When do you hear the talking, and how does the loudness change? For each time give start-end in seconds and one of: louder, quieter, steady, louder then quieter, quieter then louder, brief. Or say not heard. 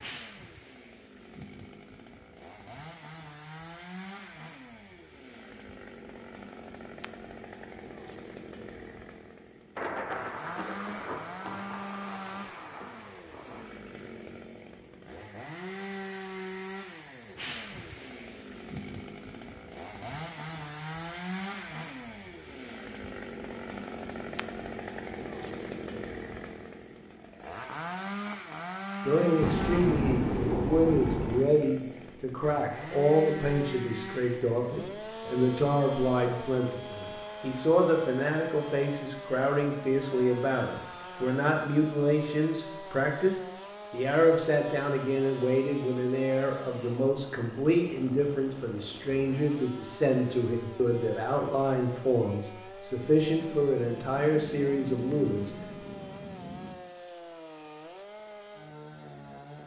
29.1-55.9 steady.